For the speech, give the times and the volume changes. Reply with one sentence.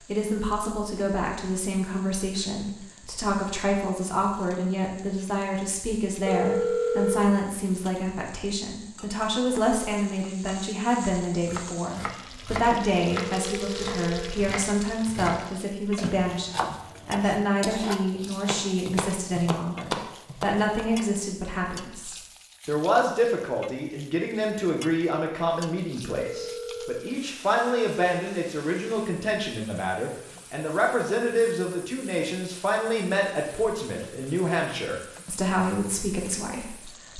You can hear the speech from 0.1 to 37.1 s, at a steady volume.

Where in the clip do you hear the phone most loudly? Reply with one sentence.
The volume of the phone peaks at 7 seconds.